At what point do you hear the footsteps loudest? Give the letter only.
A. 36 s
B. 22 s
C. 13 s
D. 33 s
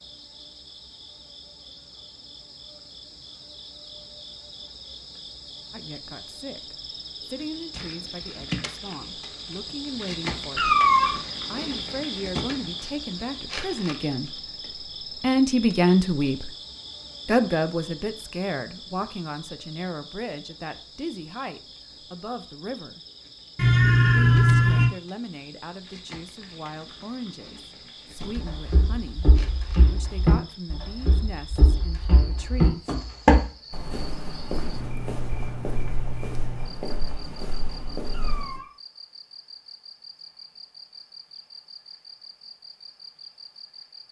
D.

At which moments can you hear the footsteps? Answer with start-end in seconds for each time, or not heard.
28.1-38.6.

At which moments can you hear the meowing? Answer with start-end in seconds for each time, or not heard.
10.6-11.2, 23.6-24.9, 38.1-38.7.